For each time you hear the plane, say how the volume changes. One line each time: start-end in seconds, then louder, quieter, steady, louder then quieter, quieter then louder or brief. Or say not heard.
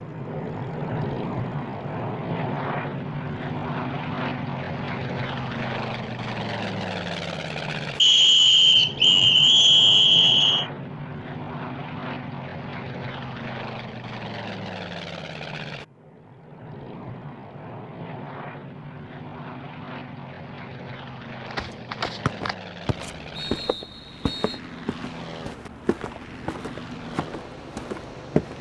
0.0-28.5 quieter.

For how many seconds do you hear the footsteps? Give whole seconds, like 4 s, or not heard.
7 s.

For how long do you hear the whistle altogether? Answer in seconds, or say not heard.
5 s.